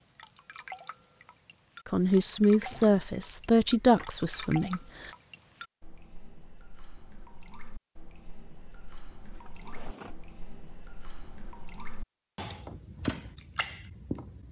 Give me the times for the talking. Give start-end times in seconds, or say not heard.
1.9-5.1.